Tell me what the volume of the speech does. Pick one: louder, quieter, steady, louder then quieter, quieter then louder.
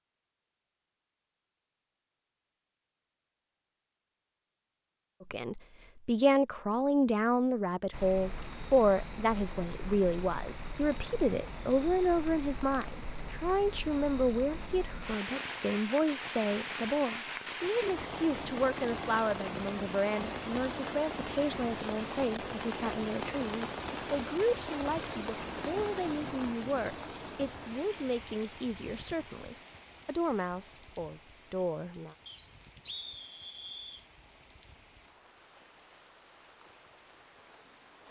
quieter.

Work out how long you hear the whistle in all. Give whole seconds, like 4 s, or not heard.
2 s.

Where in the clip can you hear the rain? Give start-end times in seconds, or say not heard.
7.9-38.0.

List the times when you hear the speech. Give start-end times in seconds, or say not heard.
5.3-32.1.